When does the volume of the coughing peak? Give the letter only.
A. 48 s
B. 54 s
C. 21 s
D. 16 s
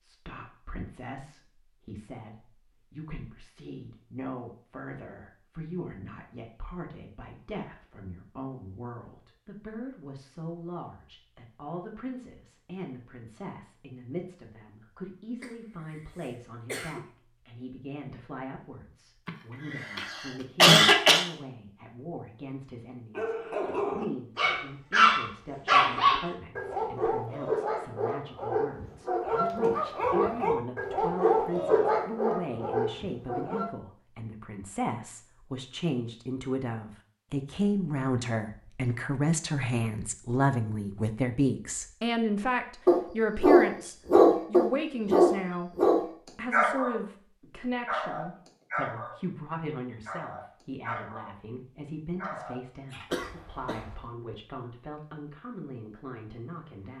C.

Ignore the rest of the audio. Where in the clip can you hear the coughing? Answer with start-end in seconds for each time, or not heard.
15.4-17.0, 19.2-21.2, 53.1-54.0.